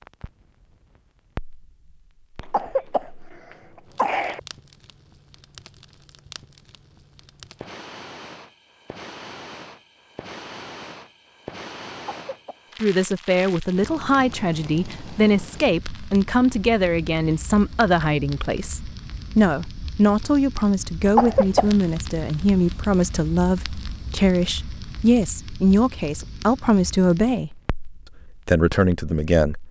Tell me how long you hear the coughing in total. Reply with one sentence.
The coughing can be heard for 3 seconds in total.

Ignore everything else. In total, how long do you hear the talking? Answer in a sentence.
The talking can be heard for 16 seconds in total.